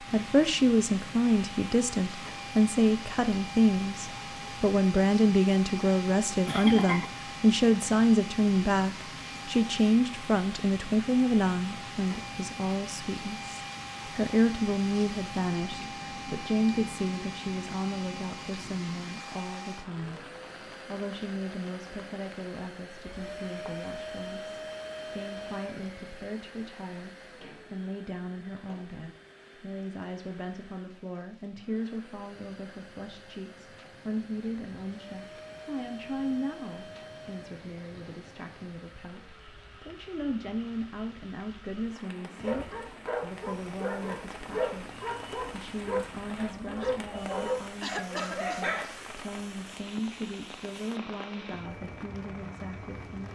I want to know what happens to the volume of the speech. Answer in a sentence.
The loudness of the speech goes down.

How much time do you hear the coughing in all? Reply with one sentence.
You can hear the coughing for 2 seconds altogether.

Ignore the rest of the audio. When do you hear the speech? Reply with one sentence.
You can hear the speech from 0.0 to 53.3 s.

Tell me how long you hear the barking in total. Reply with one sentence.
You can hear the barking for 7 seconds altogether.